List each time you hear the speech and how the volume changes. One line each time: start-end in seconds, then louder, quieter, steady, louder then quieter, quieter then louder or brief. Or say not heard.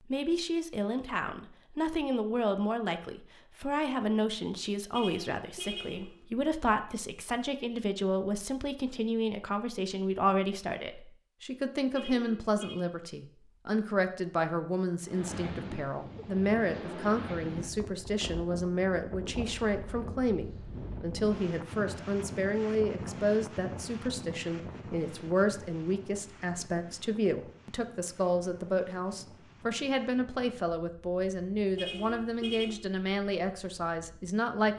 0.1-34.7 steady.